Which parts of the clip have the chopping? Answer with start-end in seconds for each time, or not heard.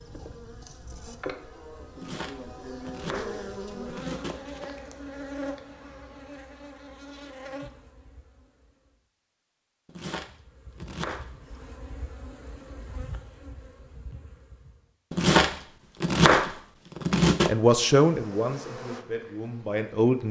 1.9-4.8, 9.8-11.3, 15.1-17.6.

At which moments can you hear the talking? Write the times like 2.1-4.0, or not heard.
17.4-20.2.